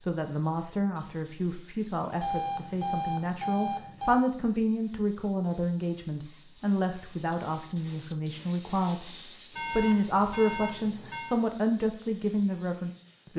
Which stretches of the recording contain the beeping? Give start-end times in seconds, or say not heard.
2.2-4.2, 9.5-11.3.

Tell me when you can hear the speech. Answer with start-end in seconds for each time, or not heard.
0.0-13.3.